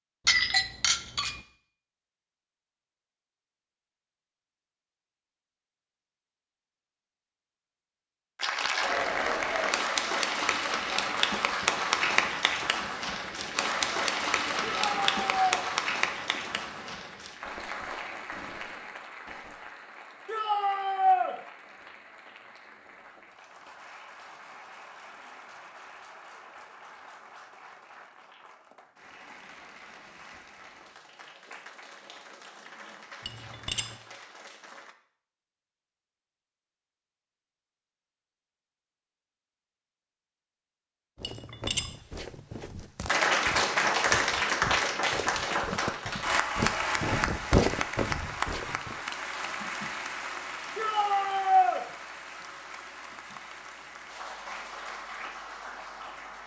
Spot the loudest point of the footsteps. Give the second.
48 s.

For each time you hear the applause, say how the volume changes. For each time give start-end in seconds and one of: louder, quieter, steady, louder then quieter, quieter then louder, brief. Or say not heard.
8.3-35.0 quieter
43.0-56.4 quieter.